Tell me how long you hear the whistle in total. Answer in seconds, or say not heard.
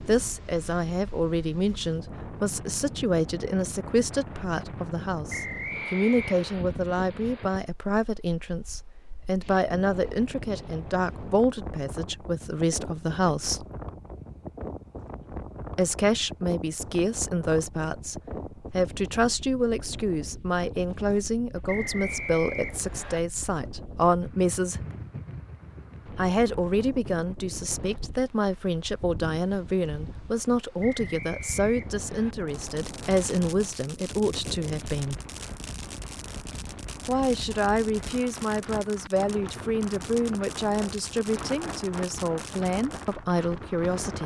4 s.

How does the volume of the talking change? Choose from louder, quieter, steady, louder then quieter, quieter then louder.
steady.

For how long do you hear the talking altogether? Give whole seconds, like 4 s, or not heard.
39 s.